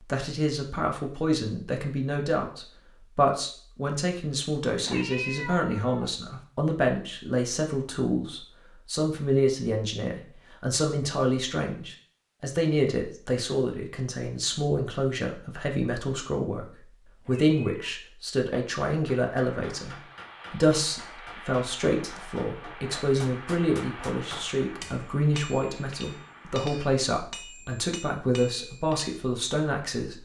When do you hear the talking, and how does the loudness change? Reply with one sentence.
You can hear the talking from 0.0 to 30.2 s, at a steady volume.